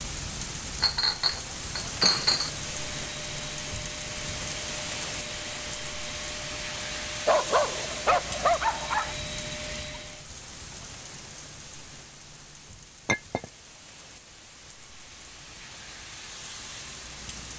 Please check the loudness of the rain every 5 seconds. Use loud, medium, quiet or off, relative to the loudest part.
loud, loud, medium, medium.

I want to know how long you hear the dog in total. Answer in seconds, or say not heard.
2 s.